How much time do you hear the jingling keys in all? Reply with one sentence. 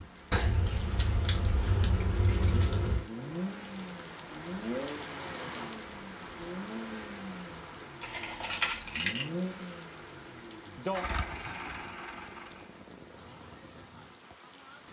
You can hear the jingling keys for 4 seconds altogether.